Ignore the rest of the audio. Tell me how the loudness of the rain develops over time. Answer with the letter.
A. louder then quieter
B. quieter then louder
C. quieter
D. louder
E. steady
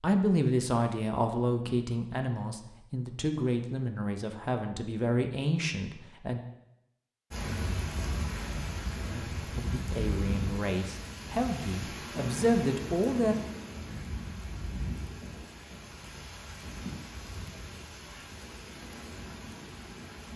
C.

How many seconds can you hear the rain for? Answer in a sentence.
You can hear the rain for 13 seconds altogether.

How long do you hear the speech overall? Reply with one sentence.
You can hear the speech for 11 seconds altogether.